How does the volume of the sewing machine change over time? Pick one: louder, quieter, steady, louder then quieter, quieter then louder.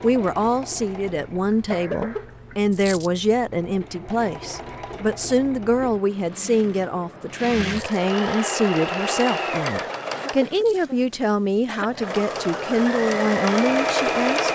louder.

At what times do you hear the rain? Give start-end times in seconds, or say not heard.
not heard.